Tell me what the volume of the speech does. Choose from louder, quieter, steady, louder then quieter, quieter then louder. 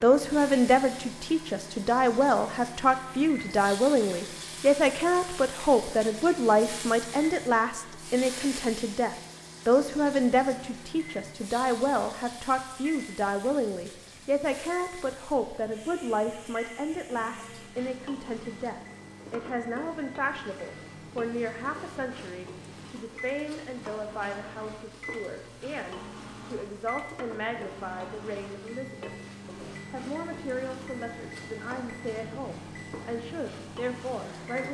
quieter.